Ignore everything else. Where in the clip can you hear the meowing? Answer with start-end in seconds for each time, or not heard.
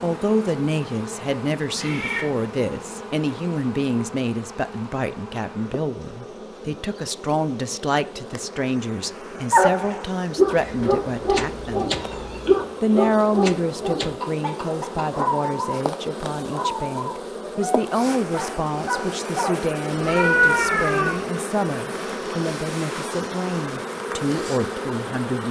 1.8-2.2, 10.6-12.6, 19.9-21.1.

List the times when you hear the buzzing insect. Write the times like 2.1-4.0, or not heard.
0.0-25.4.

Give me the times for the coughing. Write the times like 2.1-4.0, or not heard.
14.2-15.3.